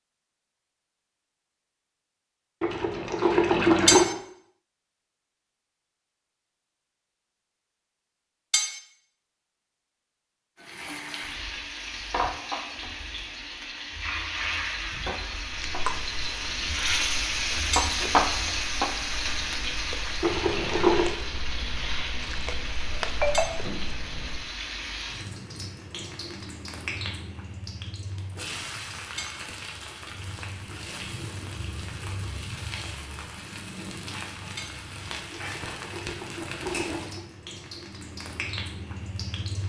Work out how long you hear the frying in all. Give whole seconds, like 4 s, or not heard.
29 s.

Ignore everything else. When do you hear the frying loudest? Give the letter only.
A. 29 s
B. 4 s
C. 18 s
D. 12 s
C.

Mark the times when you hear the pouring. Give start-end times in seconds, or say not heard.
2.6-4.0, 20.2-21.1, 35.3-37.2.